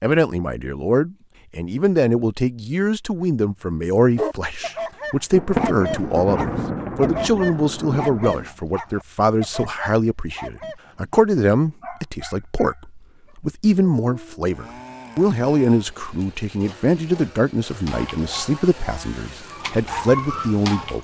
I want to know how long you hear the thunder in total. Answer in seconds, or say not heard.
3 s.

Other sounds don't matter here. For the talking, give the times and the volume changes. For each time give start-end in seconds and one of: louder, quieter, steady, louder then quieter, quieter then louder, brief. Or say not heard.
0.0-20.9 steady.